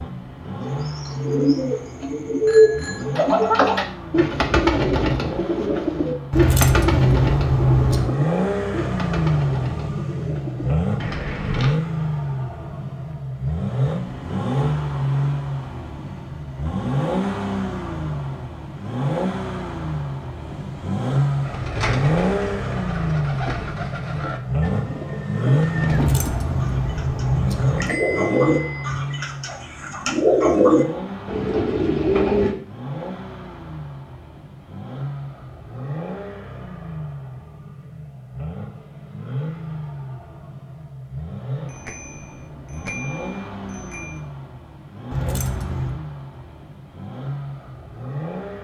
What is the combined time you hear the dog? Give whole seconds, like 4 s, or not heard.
not heard.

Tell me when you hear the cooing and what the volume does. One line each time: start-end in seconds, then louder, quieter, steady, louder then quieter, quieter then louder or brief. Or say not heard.
0.6-11.8 quieter
21.4-32.5 louder.